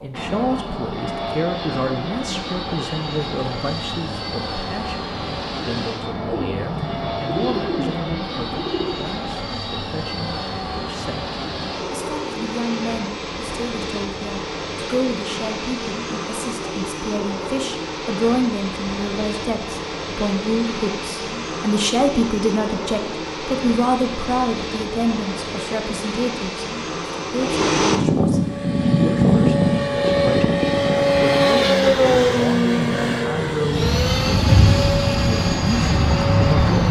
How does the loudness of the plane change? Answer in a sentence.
The loudness of the plane goes up.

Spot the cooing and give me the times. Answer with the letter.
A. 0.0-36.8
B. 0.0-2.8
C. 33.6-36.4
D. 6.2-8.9
D.